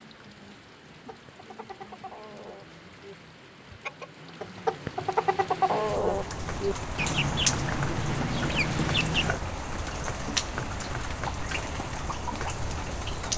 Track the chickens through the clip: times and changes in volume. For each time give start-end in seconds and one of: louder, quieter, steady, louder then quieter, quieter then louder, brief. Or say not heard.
1.1-9.4 louder.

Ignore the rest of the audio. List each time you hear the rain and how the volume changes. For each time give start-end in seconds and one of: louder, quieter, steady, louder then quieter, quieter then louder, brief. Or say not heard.
0.0-13.3 louder.